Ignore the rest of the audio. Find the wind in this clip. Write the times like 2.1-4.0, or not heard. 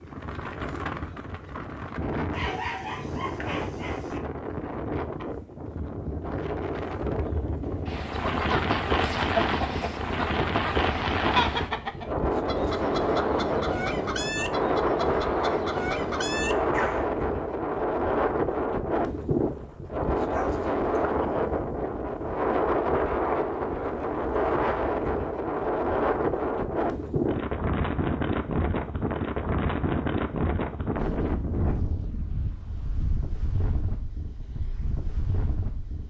0.0-36.0.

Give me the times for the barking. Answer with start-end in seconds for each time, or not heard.
2.3-4.2, 20.3-21.0.